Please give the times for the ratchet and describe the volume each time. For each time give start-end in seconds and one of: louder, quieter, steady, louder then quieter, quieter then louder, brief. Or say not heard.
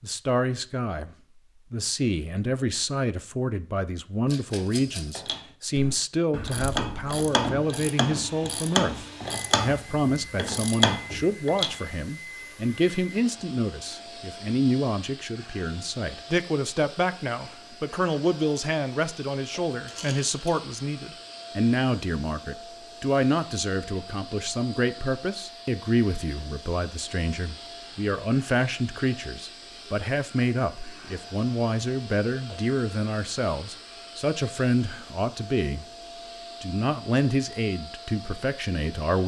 5.2-11.8 louder.